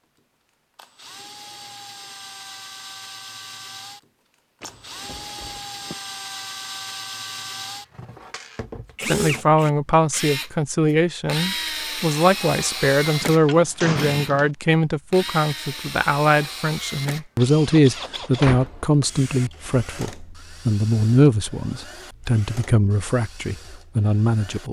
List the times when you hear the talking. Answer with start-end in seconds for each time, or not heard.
9.0-24.6.